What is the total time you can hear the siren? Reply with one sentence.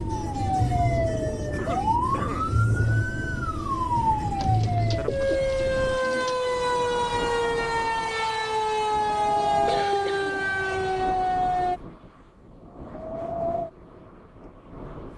The siren can be heard for 12 seconds in total.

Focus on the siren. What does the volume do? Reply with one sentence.
The loudness of the siren stays about the same.